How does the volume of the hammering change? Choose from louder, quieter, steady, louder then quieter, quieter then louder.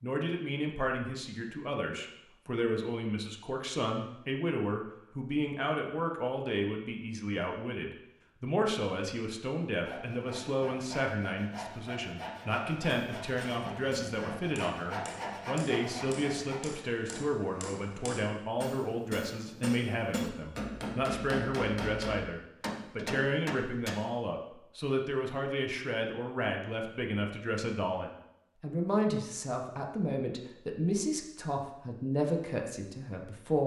louder.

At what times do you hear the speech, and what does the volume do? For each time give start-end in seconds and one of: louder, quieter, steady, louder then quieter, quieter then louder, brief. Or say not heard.
0.0-33.6 steady.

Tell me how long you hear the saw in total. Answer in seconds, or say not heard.
7 s.